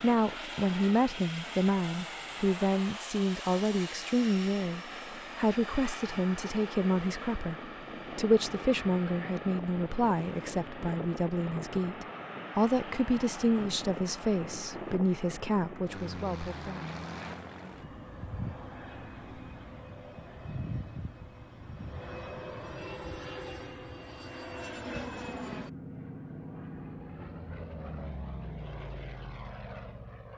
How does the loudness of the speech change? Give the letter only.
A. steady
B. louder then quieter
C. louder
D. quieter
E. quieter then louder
A.